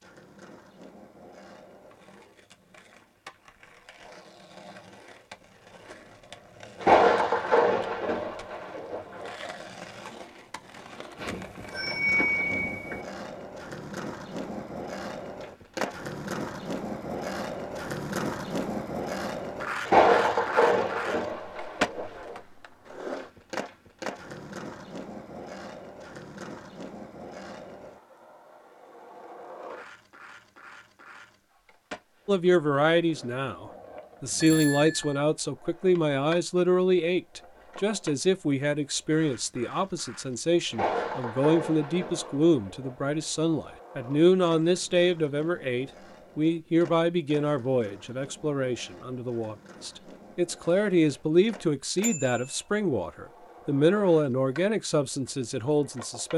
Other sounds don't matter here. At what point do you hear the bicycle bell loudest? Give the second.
12 s.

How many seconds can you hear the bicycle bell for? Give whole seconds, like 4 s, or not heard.
3 s.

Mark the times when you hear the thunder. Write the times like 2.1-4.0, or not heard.
6.8-9.3, 19.9-22.4, 40.7-43.2.